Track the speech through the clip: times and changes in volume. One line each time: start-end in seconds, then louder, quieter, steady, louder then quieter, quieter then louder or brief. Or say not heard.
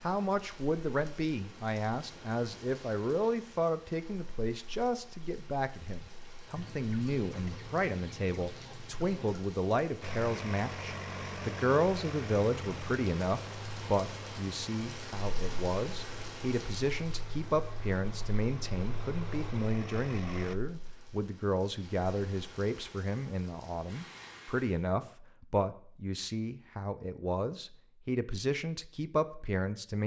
0.0-30.0 steady.